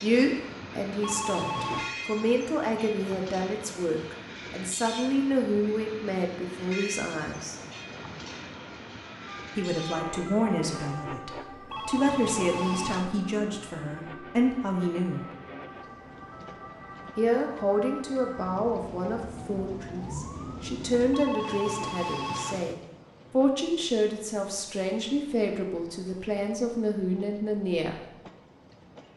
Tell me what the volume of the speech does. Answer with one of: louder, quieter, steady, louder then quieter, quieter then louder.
steady.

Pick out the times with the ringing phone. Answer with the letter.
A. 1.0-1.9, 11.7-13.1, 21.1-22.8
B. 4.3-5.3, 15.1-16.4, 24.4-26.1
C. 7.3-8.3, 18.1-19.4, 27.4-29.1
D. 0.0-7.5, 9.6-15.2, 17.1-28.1
A.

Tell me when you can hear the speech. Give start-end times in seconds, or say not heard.
0.0-7.5, 9.6-15.2, 17.1-28.1.